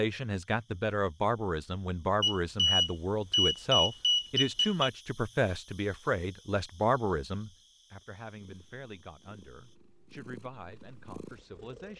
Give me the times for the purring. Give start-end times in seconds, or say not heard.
8.3-11.9.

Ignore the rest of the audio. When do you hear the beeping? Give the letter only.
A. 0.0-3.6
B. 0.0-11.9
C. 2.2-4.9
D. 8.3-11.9
C.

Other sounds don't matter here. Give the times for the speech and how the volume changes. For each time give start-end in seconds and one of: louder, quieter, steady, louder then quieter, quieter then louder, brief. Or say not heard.
0.0-11.9 quieter.